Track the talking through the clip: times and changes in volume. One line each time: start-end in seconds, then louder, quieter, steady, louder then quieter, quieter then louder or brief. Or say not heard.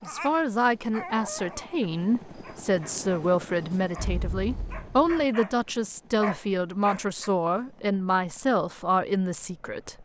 0.0-10.0 steady.